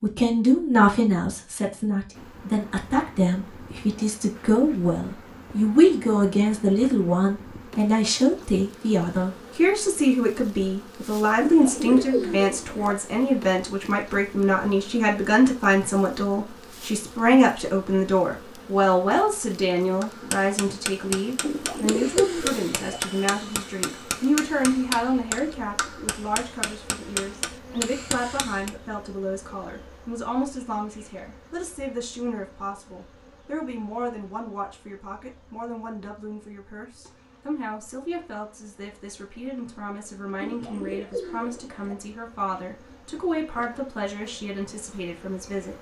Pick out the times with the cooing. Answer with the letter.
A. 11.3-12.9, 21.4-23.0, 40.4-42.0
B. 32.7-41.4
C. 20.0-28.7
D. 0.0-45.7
A.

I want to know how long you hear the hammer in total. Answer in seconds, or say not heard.
9 s.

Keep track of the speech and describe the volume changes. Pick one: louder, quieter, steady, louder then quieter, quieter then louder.
quieter.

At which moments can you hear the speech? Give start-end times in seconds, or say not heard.
0.0-45.7.